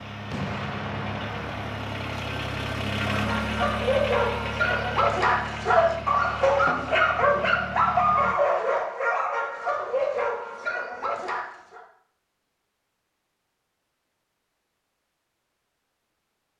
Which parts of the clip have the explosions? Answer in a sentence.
You can hear the explosions from 0.3 to 1.9 s.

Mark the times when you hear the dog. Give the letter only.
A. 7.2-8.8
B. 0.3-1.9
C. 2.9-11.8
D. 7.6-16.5
C.